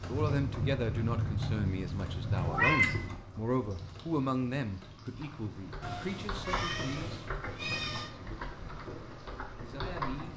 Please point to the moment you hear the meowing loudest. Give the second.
3 s.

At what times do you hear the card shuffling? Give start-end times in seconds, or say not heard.
not heard.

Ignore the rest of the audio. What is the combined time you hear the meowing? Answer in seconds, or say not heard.
4 s.